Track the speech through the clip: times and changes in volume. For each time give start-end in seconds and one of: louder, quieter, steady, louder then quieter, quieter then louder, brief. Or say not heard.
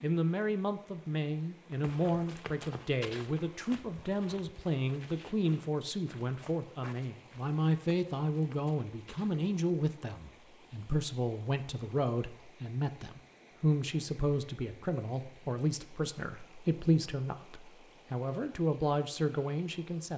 0.0-20.1 steady.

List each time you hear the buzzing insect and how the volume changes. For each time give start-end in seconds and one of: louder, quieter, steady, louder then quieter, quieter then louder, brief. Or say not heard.
not heard.